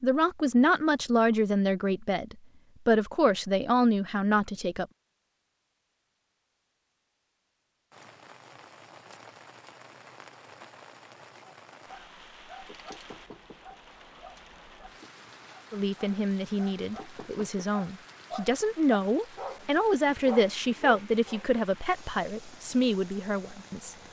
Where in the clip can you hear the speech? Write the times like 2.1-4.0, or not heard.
0.0-4.8, 15.7-23.9.